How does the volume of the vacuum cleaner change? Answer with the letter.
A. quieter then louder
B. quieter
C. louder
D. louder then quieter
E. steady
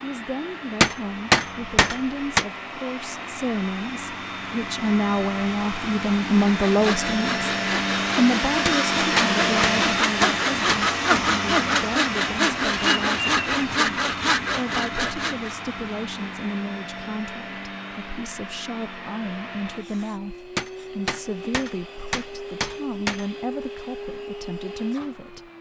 D.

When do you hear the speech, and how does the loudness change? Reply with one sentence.
The speech can be heard from 0.0 to 7.4 s, getting louder; and from 8.2 to 25.5 s, at a steady volume.